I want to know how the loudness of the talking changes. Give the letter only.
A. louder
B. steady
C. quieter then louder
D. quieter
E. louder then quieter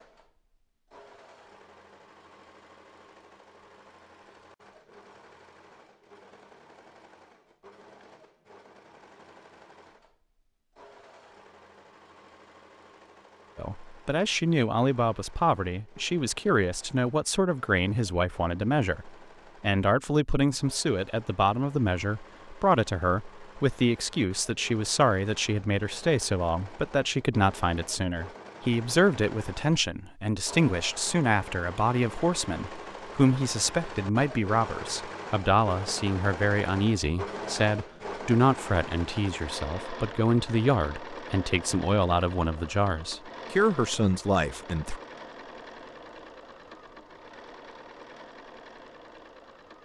B.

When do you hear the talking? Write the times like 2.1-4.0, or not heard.
13.6-45.0.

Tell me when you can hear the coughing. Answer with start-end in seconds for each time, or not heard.
not heard.